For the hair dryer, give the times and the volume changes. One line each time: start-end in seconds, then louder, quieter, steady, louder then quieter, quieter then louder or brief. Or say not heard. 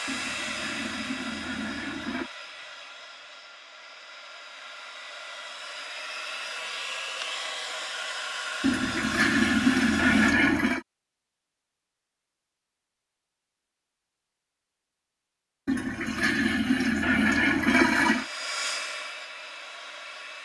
0.0-10.3 quieter then louder
18.0-20.4 brief.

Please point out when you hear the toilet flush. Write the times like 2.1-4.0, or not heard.
0.1-2.3, 8.6-10.8, 15.7-18.2.